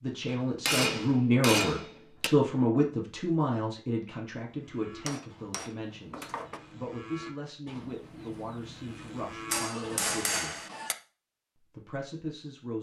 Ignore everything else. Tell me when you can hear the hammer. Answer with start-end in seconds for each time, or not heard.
0.2-2.3, 5.0-6.6, 9.5-10.9.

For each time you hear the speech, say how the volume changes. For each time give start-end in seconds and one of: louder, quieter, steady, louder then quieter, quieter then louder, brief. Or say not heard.
0.0-10.6 quieter
11.6-12.7 brief.